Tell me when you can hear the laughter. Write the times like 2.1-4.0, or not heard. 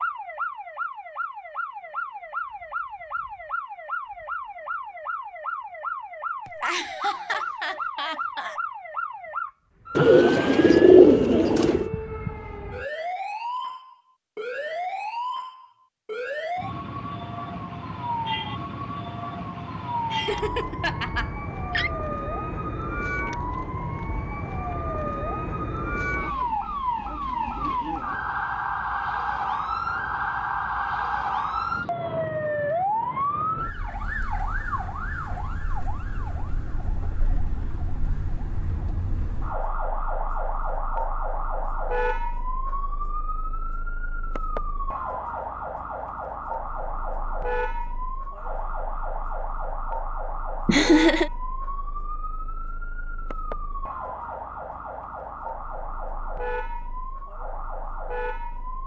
6.5-8.6, 20.1-21.9, 50.6-51.3.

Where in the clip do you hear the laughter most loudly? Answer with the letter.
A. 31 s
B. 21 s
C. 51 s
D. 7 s
C.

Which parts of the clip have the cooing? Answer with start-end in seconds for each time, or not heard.
9.9-11.9.